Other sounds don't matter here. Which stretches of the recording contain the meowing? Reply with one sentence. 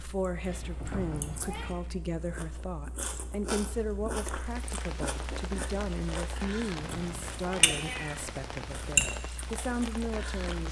The meowing can be heard from 0.4 to 1.7 s and from 6.4 to 8.9 s.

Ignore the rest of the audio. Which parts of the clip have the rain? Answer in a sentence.
You can hear the rain from 4.4 to 10.6 s.